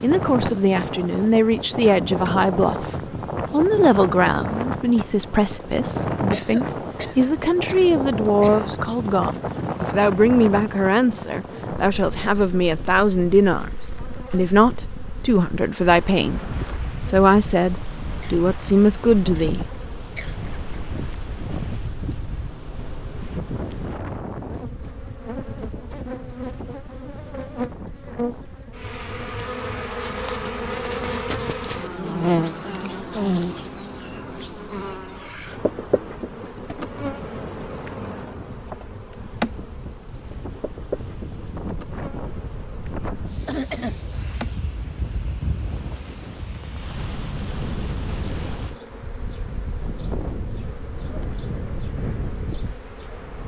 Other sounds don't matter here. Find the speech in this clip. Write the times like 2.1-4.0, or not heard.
0.0-2.9, 3.5-19.6.